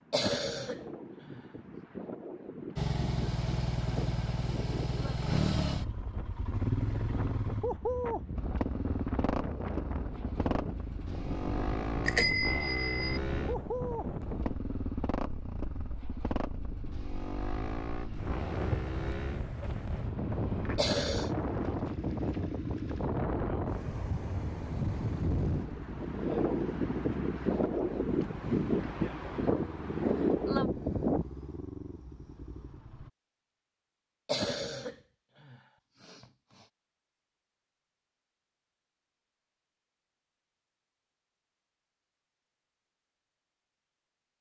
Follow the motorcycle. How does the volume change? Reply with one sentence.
The loudness of the motorcycle goes down.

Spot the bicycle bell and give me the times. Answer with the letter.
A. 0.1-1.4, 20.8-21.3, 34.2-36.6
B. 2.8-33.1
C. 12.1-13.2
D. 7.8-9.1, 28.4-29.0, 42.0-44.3
C.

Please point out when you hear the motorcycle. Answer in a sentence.
The motorcycle can be heard from 2.8 to 33.1 s.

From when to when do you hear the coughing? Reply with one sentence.
The coughing can be heard from 0.1 to 1.4 s, from 20.8 to 21.3 s and from 34.2 to 36.6 s.